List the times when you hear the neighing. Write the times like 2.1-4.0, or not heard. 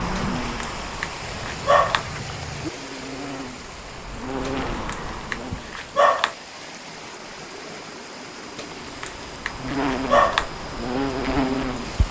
1.2-2.7.